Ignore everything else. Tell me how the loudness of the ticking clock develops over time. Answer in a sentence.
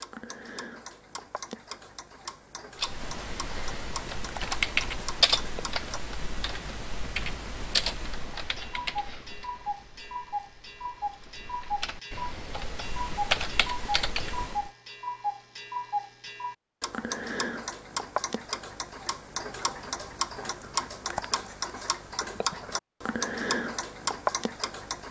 The loudness of the ticking clock goes up.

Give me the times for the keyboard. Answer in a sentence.
You can hear the keyboard from 2.8 to 14.7 s.